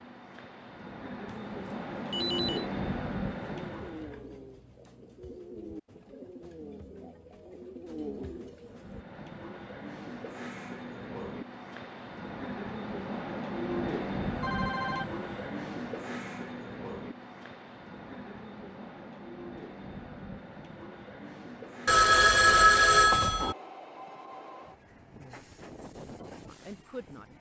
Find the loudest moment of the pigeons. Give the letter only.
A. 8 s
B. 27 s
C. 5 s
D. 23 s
A.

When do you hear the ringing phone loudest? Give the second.
23 s.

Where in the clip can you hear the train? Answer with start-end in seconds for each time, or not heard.
0.0-4.2, 8.7-27.3.